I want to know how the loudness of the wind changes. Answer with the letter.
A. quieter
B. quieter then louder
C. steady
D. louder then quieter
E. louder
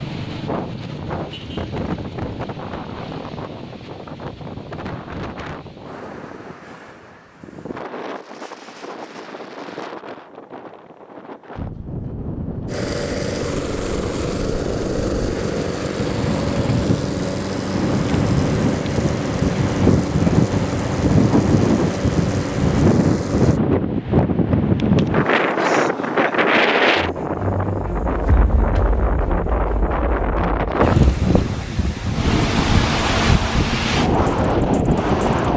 E.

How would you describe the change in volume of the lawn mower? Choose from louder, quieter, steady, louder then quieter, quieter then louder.
steady.